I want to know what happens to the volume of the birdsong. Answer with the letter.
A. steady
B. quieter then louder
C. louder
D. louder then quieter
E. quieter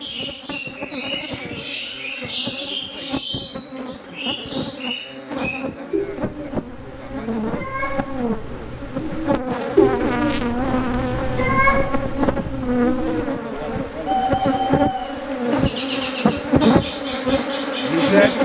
D.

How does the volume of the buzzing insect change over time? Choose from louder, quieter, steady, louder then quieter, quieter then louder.
louder.